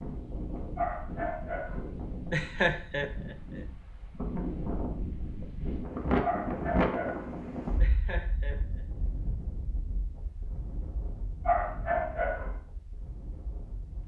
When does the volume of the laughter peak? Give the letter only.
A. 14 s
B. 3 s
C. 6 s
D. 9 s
B.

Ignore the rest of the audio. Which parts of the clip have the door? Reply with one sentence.
You can't hear the door here.